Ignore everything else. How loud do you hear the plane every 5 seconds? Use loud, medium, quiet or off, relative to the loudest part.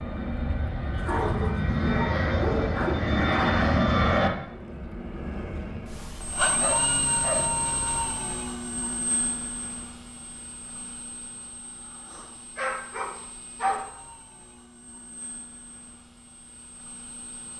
loud, medium, quiet, quiet.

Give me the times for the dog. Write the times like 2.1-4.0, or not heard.
0.9-3.6, 6.5-7.7, 12.6-13.8.